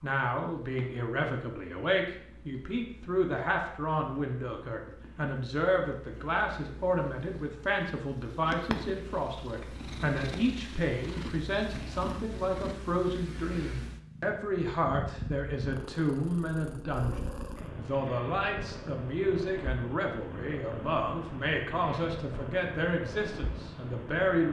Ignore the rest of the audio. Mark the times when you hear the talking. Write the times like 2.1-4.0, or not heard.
0.0-24.4.